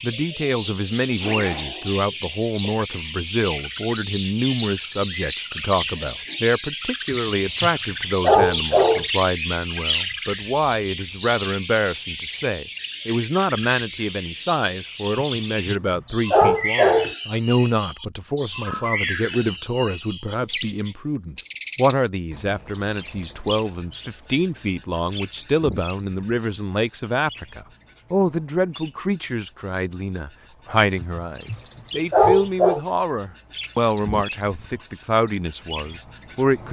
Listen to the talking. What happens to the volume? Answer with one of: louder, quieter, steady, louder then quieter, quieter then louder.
steady.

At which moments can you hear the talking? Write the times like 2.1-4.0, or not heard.
0.0-36.6.